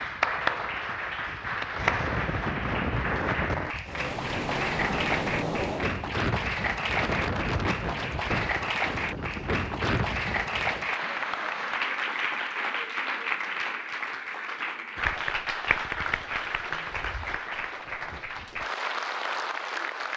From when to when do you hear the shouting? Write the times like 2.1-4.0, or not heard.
not heard.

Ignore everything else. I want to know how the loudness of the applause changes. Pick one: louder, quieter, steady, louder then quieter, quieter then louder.
steady.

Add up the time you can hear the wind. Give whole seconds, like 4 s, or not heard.
11 s.